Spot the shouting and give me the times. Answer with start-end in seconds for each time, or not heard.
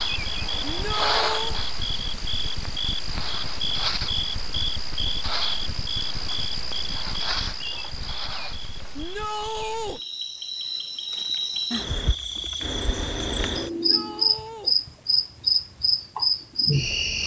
0.7-1.6, 8.9-10.0, 13.7-14.8.